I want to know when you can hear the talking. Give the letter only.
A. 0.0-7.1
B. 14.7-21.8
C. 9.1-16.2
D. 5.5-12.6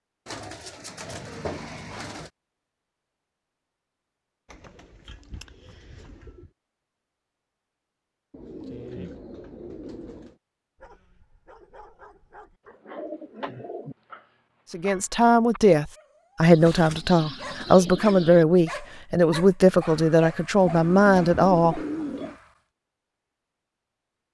B.